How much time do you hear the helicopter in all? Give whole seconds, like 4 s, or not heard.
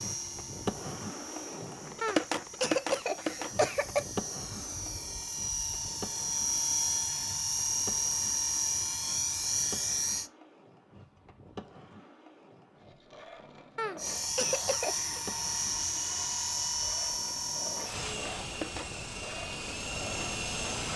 17 s.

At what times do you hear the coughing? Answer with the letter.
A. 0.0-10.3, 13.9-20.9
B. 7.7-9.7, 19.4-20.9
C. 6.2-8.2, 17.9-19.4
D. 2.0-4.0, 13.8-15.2
D.